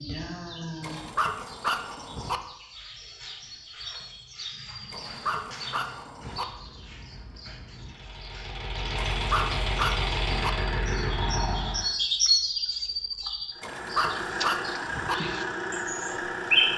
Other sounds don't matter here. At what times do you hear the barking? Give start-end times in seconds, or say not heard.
0.8-2.4, 4.9-6.5, 8.9-10.5, 13.6-15.2.